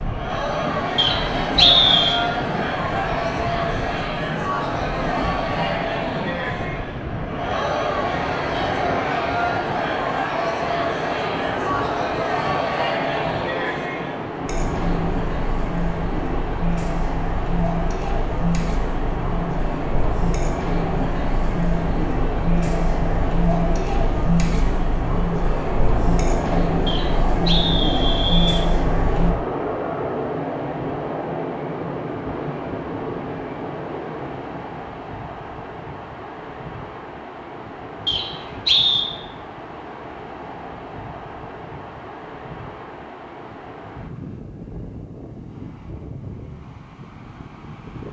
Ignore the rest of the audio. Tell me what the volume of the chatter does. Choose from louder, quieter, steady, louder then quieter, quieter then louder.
steady.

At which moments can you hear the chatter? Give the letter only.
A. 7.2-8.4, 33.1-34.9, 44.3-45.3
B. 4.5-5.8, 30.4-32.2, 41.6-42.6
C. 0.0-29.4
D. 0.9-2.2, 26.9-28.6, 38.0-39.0
C.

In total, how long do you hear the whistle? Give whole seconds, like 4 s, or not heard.
4 s.